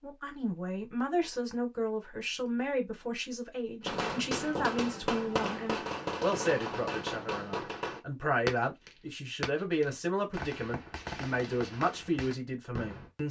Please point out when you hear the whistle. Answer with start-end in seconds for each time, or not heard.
not heard.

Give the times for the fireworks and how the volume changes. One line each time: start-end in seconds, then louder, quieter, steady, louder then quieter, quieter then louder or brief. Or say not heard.
3.9-13.1 quieter.